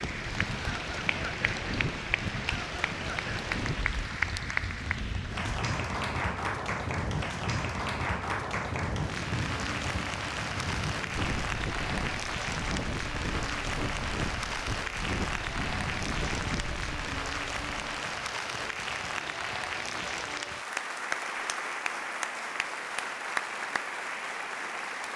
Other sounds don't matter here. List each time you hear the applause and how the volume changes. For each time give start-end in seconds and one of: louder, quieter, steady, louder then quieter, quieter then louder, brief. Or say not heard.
0.0-25.1 steady.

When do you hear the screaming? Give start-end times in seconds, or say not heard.
not heard.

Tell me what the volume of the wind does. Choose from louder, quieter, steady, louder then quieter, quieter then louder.
steady.